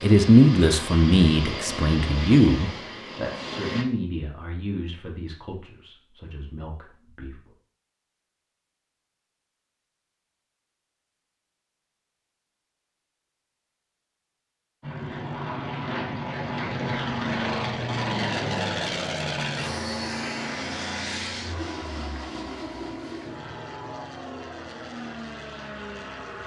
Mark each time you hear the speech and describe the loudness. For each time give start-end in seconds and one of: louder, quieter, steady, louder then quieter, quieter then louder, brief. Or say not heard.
0.0-7.3 quieter.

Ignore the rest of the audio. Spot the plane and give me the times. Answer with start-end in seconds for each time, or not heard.
0.0-3.9, 14.8-26.4.